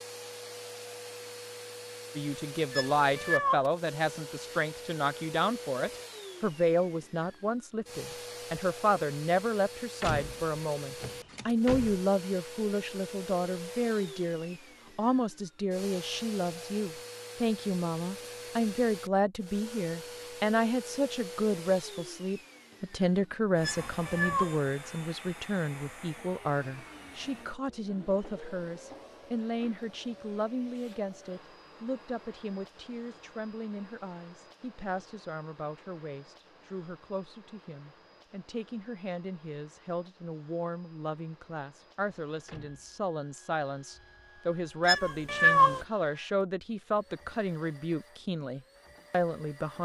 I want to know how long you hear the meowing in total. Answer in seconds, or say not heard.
3 s.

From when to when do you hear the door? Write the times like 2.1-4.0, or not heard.
10.0-12.0, 42.5-43.0.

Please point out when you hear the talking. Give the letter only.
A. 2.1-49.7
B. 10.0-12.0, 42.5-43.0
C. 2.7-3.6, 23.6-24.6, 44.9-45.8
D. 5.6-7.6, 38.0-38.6
A.